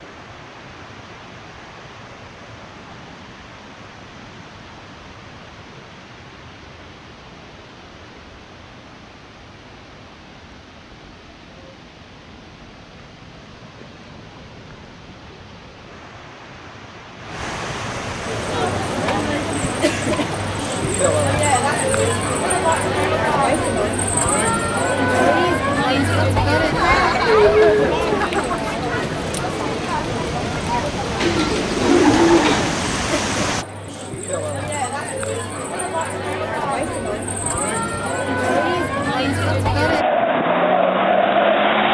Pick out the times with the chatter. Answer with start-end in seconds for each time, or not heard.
18.1-41.9.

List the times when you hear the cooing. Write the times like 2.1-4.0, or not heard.
31.2-32.8.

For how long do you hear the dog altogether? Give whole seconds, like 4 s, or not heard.
not heard.